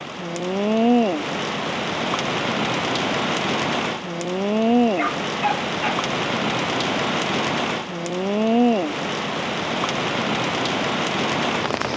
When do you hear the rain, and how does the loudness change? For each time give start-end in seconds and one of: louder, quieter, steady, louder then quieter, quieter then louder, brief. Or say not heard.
0.0-11.9 steady.